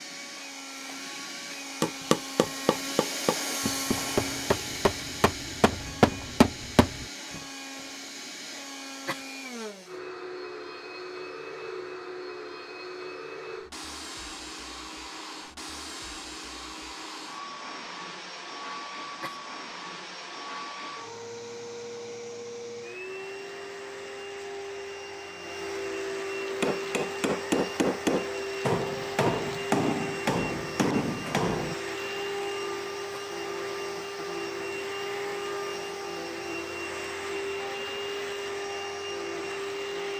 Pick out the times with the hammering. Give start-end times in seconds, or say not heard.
1.8-7.0, 26.6-31.8.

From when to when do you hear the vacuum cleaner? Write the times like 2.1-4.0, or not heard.
0.0-40.1.